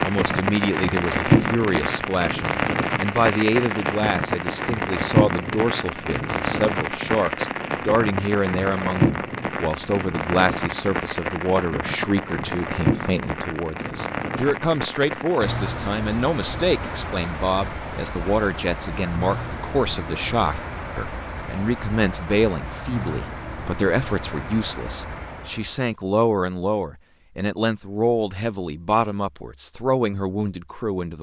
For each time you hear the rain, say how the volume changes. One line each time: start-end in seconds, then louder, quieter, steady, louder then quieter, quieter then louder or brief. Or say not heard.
0.0-25.8 quieter.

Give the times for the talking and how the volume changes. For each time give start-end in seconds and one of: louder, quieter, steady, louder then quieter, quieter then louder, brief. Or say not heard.
0.0-31.1 steady.